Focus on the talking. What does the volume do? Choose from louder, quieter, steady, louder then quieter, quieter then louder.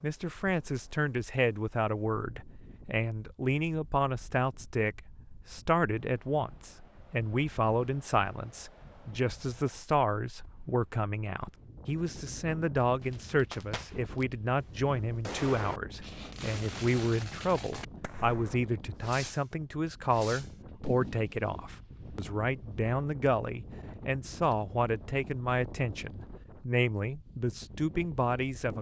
steady.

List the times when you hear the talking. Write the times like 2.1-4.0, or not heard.
0.0-28.7.